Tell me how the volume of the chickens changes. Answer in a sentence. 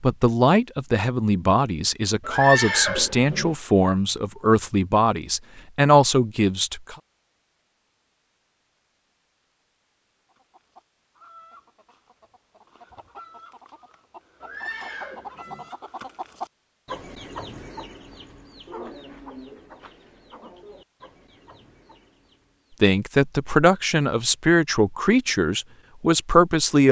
The loudness of the chickens goes up, then down.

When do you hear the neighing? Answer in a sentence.
The neighing can be heard from 2.2 to 3.5 s and from 14.4 to 15.7 s.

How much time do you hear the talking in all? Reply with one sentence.
The talking can be heard for 11 seconds in total.